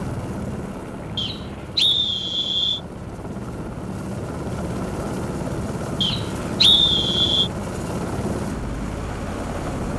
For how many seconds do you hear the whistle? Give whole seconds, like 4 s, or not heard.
3 s.